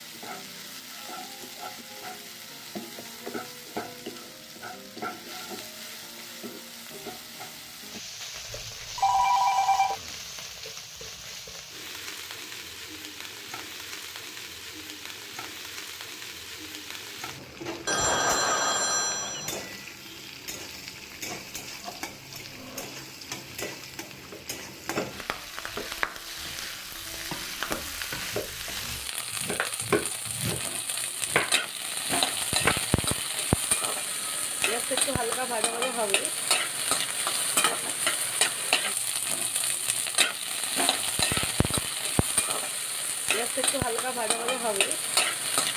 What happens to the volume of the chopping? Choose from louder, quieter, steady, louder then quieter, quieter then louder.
louder.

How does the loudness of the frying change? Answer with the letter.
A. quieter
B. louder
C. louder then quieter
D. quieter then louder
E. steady
B.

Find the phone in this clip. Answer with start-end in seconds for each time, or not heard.
8.5-9.9, 17.9-19.5, 34.0-35.5.